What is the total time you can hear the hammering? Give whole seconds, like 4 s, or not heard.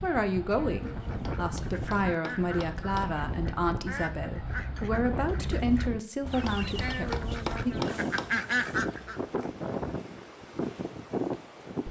4 s.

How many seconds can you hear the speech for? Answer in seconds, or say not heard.
8 s.